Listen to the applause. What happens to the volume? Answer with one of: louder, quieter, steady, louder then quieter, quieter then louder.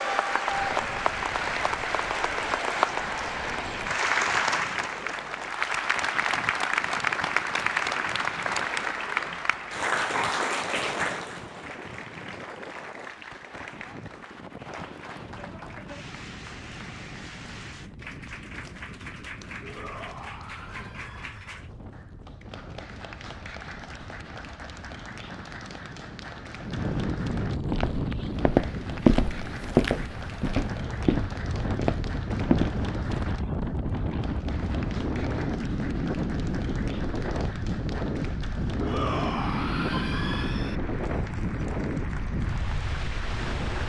quieter.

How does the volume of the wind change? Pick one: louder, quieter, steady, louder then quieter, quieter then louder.
louder.